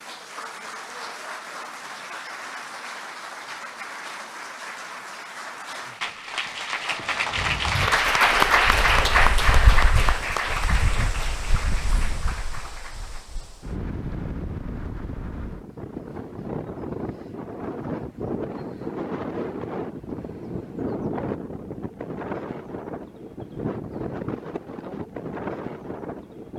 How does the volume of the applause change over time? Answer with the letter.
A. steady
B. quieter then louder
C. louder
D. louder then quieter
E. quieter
D.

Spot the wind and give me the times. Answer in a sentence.
You can hear the wind from 7.0 to 26.5 s.